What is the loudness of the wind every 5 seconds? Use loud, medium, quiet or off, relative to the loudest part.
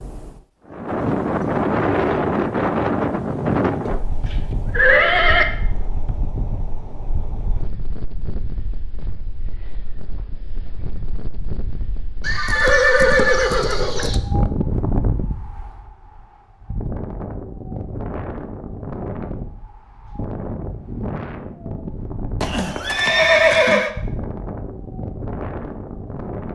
loud, quiet, medium, medium, medium, medium.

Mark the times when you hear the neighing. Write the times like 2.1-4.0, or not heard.
3.9-5.5, 12.2-14.2, 22.4-23.9.